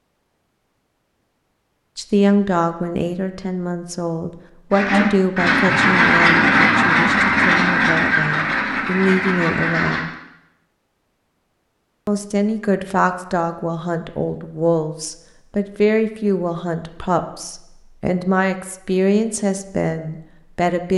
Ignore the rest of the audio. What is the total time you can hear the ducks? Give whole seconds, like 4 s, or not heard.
5 s.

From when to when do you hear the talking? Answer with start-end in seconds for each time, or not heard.
1.9-10.1, 12.1-20.9.